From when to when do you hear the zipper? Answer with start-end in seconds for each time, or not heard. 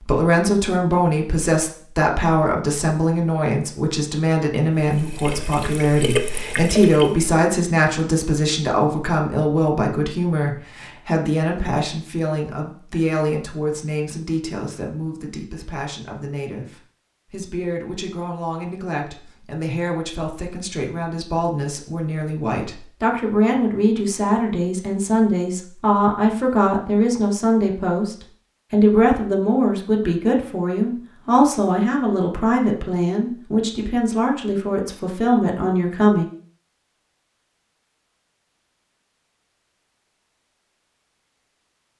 not heard.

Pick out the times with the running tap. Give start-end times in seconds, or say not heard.
4.8-7.3.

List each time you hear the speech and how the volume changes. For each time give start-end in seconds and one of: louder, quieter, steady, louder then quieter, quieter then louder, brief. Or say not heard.
0.0-36.2 quieter then louder.